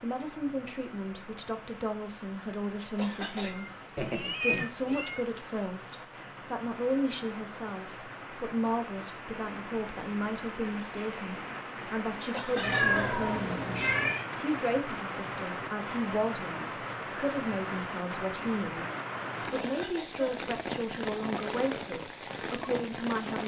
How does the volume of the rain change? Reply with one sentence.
The volume of the rain goes up.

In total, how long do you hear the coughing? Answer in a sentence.
You can hear the coughing for 2 seconds altogether.